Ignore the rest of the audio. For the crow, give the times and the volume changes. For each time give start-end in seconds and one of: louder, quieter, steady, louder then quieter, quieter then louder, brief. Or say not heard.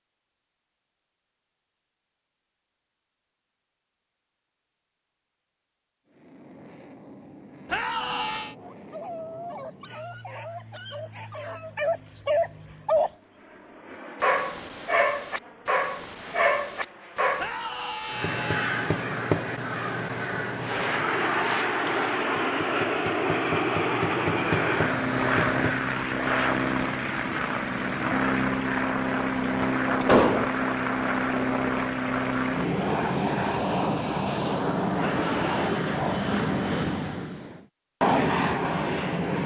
18.1-25.9 quieter then louder.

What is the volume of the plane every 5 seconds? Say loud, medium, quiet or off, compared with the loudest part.
off, quiet, quiet, quiet, loud, loud, loud, loud.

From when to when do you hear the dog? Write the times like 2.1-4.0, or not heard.
8.6-13.1, 13.9-17.6.